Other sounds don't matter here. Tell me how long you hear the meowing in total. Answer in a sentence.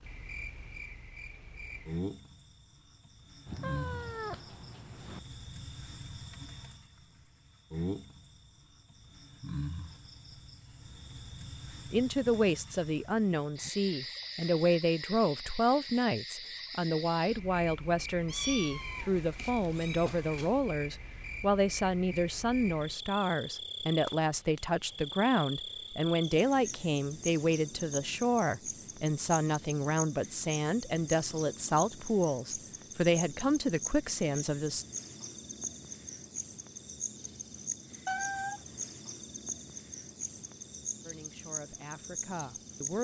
The meowing can be heard for 5 seconds in total.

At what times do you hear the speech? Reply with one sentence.
You can hear the speech from 11.9 to 34.9 s and from 41.0 to 42.9 s.